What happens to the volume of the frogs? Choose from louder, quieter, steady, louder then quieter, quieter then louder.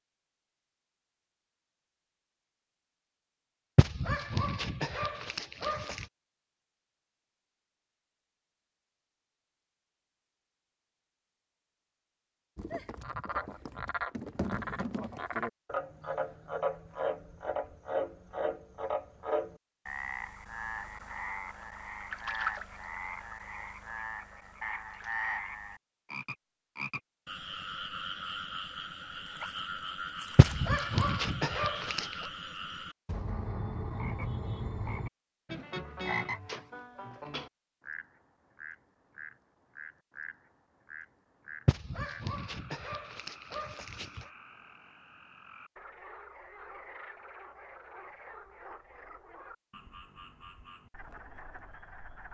quieter.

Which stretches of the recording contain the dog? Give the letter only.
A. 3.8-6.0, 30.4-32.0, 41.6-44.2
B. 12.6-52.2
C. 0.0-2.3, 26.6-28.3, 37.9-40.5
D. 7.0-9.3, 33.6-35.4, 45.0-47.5
A.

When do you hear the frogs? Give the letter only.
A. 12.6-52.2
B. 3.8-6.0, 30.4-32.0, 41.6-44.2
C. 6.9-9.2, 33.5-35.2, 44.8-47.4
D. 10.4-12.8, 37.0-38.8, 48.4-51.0
A.